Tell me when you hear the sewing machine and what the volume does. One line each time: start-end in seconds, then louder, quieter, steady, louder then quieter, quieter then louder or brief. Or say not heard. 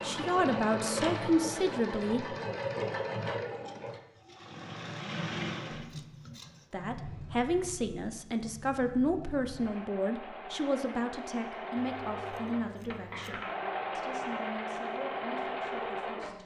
0.0-16.4 quieter then louder.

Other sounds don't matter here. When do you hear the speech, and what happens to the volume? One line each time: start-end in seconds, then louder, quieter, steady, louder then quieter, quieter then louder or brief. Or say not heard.
0.0-2.4 brief
6.7-16.4 quieter.